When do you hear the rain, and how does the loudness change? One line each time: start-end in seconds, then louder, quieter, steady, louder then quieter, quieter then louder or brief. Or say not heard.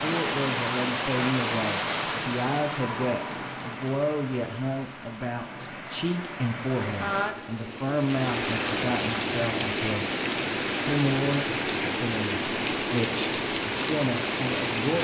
0.0-14.9 quieter then louder.